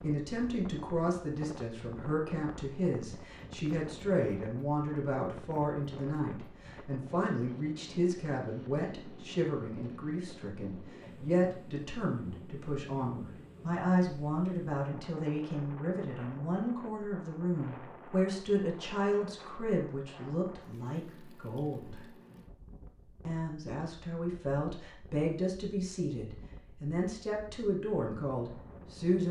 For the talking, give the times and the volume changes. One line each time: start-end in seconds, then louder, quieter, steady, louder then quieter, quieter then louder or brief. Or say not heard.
0.0-22.1 steady
23.2-29.2 steady.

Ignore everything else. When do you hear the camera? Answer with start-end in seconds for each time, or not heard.
not heard.